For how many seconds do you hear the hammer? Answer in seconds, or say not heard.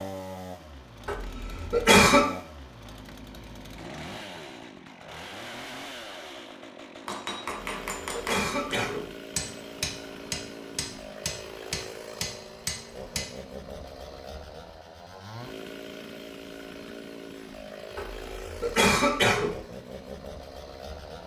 6 s.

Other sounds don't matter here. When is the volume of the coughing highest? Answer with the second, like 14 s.
2 s.